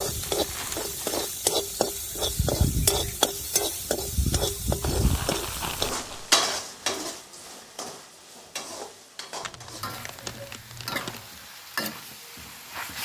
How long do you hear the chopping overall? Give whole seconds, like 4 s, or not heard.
not heard.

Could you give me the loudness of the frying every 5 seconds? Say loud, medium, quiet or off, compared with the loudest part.
loud, loud, medium.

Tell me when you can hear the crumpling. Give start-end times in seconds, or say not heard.
0.2-1.4, 4.8-6.3, 9.4-11.2.